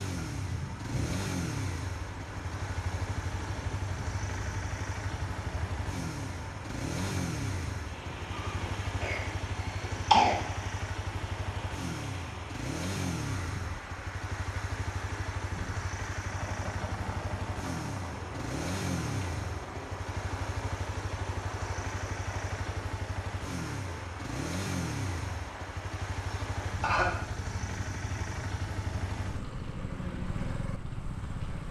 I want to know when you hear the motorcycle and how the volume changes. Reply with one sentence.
The motorcycle can be heard from 0.0 to 31.6 s, at a steady volume.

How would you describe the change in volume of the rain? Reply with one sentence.
The volume of the rain stays about the same.